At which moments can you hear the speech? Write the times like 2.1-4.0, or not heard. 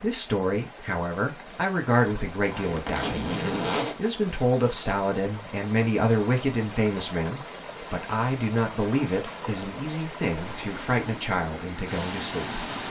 0.0-3.2, 4.0-12.6.